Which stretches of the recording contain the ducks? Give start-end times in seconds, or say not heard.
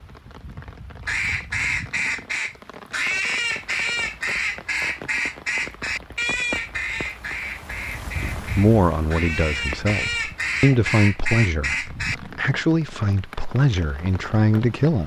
1.1-12.2.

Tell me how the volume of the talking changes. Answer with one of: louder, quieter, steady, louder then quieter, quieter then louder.
steady.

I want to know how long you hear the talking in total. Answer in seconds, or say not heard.
7 s.